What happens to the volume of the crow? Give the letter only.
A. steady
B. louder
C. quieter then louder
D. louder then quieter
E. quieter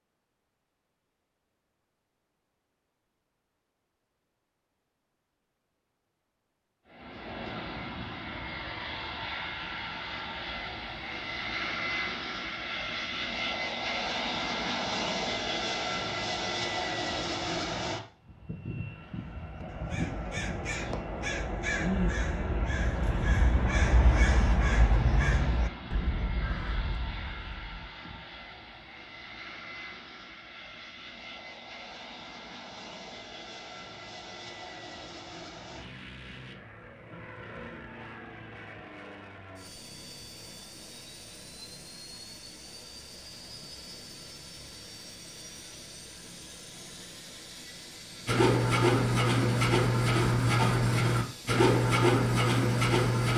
D.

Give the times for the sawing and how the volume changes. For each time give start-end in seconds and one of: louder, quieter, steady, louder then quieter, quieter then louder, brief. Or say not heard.
48.2-53.3 steady.